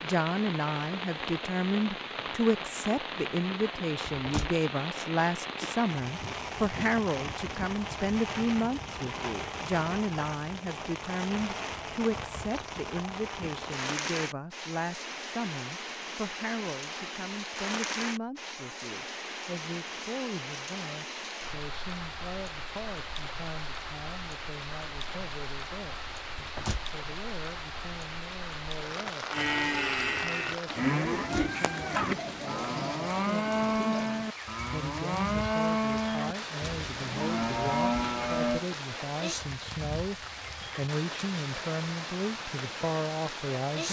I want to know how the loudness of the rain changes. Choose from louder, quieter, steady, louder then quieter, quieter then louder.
steady.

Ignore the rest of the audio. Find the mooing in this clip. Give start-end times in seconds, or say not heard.
29.3-38.6.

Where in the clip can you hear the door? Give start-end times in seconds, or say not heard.
4.1-4.5, 26.4-26.9, 31.1-31.6.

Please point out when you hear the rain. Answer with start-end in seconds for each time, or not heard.
0.0-43.8.